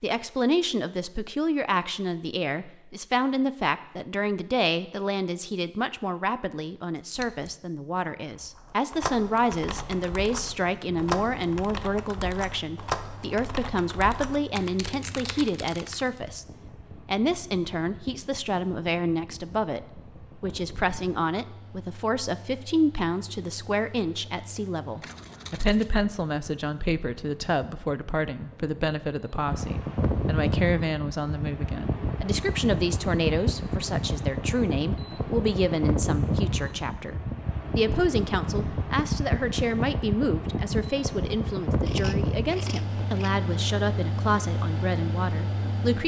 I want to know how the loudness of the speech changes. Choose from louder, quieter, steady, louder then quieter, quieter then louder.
steady.